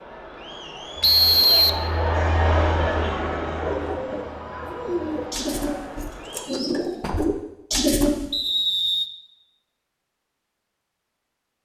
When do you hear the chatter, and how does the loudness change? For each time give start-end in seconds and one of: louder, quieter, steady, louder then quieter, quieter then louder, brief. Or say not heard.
0.0-6.6 louder then quieter.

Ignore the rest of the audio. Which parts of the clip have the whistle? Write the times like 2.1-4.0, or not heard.
1.0-1.9, 8.3-9.1.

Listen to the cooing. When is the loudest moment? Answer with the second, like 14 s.
8 s.